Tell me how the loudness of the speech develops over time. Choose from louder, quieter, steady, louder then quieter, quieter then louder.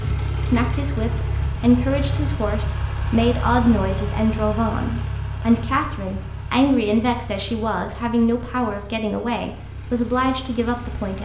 steady.